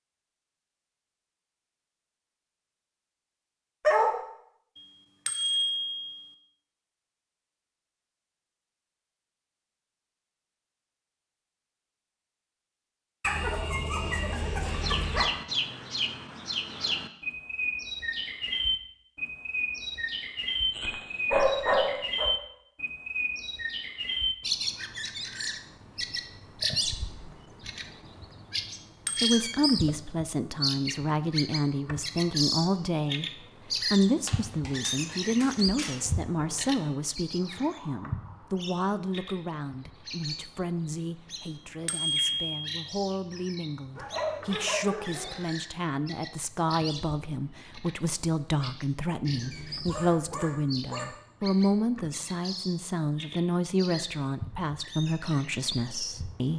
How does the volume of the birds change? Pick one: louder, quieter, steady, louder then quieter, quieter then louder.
quieter.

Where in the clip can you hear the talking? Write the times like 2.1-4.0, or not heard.
29.2-56.5.